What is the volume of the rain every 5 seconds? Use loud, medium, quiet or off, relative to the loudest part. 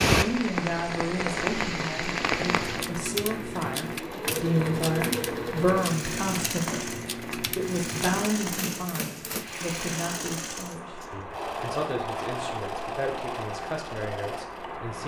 loud, medium, medium.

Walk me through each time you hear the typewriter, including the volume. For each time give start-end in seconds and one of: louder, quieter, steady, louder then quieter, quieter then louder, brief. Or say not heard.
2.4-9.5 steady.